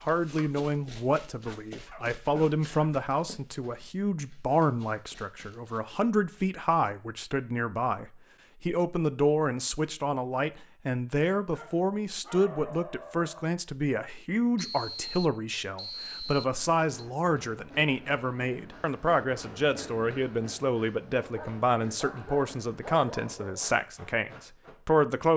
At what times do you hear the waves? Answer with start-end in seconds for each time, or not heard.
not heard.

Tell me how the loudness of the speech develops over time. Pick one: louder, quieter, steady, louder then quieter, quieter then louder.
steady.